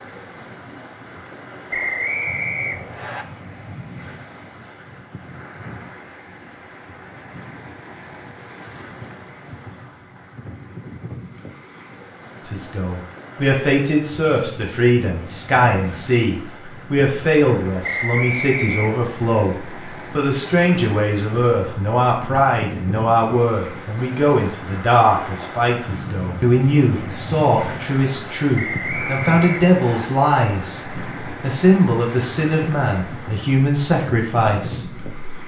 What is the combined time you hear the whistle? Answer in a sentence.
The whistle can be heard for 4 seconds in total.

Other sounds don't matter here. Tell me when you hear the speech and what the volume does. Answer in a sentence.
The speech can be heard from 12.4 to 35.1 s, at a steady volume.